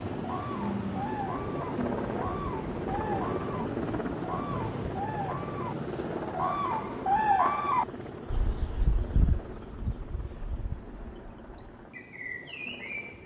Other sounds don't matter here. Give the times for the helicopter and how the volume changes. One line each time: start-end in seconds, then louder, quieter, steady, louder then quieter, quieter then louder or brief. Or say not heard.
0.0-13.2 quieter.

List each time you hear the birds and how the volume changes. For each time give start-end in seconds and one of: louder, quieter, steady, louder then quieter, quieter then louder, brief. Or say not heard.
0.0-13.2 louder then quieter.